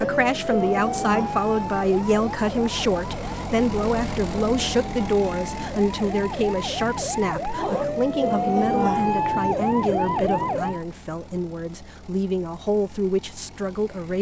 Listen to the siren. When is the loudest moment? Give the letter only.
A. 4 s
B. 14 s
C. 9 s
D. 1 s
C.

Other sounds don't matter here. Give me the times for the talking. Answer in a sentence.
You can hear the talking from 0.0 to 14.1 s.